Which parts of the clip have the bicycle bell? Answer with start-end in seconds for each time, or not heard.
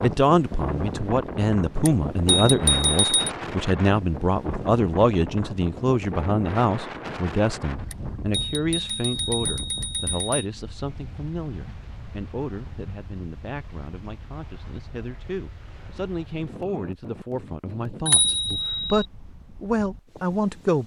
1.9-3.3, 7.9-10.4, 18.1-19.1.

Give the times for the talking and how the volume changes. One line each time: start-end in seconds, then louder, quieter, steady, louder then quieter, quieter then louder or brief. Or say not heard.
0.0-20.8 quieter then louder.